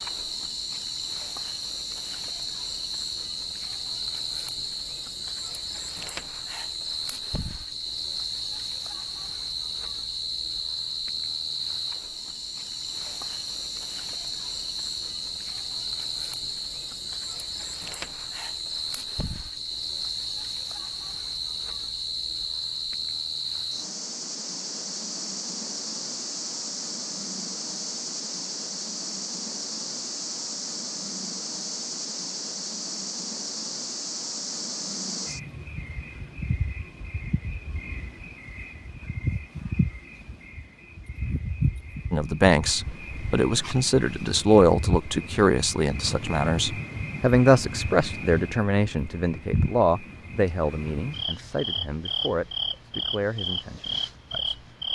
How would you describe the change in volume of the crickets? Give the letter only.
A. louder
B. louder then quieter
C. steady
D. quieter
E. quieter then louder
C.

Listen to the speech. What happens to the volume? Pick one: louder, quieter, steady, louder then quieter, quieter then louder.
quieter.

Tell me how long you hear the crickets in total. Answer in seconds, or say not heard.
55 s.